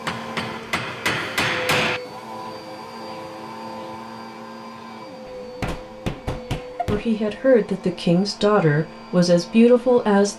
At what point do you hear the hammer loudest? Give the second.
2 s.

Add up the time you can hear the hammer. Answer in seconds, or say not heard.
4 s.